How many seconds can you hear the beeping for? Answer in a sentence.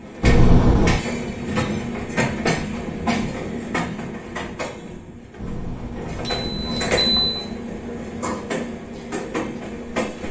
The beeping can be heard for 3 seconds in total.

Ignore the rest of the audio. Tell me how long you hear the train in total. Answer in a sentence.
The train can be heard for 10 seconds in total.